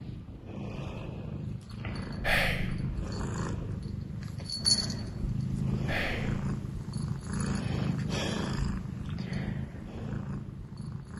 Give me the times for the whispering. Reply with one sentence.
The whispering can be heard from 2.2 to 2.7 s and from 5.8 to 6.3 s.